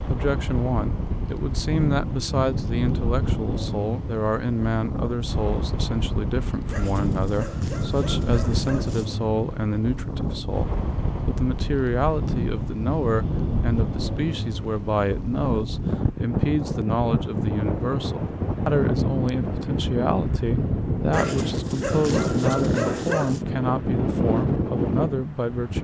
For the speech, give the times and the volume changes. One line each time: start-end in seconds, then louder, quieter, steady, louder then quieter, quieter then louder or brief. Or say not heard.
0.1-25.7 steady.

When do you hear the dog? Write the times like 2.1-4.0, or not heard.
6.7-9.1, 21.1-23.4.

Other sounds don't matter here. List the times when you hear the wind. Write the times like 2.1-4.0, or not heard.
0.0-25.7.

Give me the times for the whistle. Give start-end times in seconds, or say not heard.
not heard.